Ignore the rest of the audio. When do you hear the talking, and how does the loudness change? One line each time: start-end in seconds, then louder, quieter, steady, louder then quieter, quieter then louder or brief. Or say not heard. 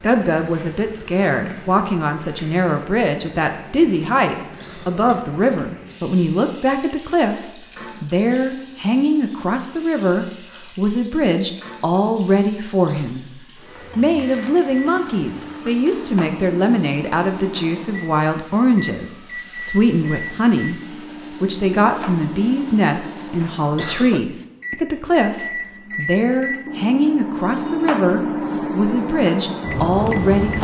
0.0-13.3 steady
13.9-30.6 steady.